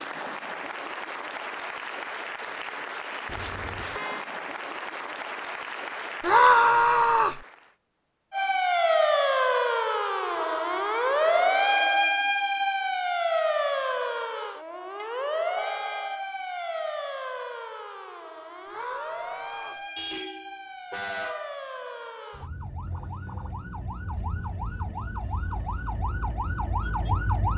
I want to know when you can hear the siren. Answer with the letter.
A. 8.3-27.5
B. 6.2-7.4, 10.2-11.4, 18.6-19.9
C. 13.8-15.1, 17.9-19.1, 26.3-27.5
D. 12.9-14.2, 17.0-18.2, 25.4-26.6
A.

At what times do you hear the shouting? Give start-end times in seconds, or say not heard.
6.2-7.4, 10.2-11.4, 18.6-19.9.